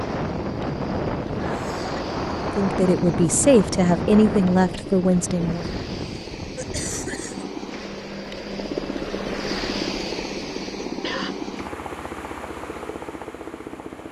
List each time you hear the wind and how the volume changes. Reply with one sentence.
The wind can be heard from 0.0 to 7.4 s, getting quieter.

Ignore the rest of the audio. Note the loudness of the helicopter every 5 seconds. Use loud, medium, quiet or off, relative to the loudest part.
medium, loud, loud.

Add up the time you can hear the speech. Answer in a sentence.
The speech can be heard for 3 seconds in total.